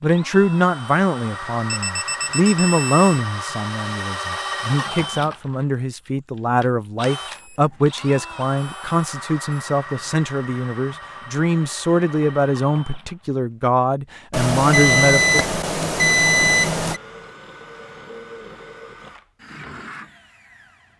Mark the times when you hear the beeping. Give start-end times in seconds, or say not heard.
1.6-3.2, 7.2-9.6, 14.3-17.0.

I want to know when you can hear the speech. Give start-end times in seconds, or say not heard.
0.0-15.4.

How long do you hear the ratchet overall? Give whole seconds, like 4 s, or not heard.
not heard.